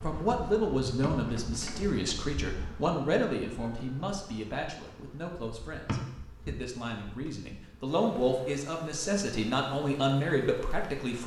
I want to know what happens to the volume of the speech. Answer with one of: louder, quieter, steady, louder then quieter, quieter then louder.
quieter then louder.